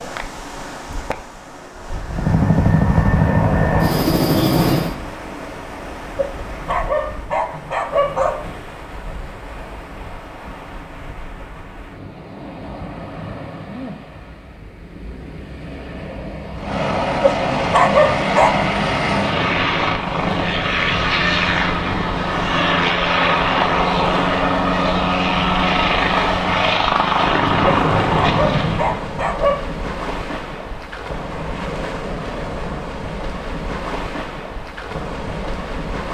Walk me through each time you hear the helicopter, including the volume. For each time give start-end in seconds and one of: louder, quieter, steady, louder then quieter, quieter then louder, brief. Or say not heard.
2.1-5.0 brief
16.6-29.1 steady.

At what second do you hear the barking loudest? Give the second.
18 s.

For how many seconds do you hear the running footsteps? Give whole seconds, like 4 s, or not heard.
not heard.